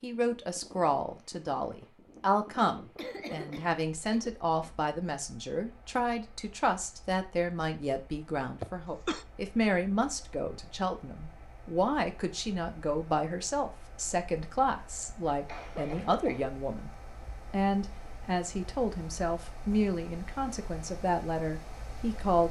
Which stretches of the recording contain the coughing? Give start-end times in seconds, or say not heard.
3.0-4.8, 8.6-9.2, 15.3-16.5.